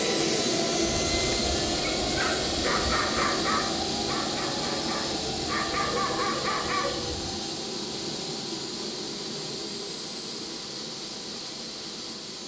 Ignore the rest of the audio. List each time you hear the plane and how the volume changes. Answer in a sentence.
You can hear the plane from 0.0 to 12.4 s, getting quieter.